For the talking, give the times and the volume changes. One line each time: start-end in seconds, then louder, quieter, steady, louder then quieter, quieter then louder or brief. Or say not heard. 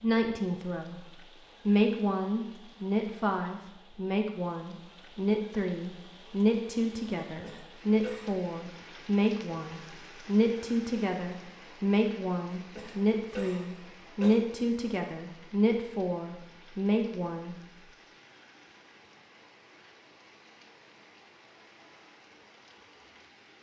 0.0-1.1 brief
1.6-17.6 steady.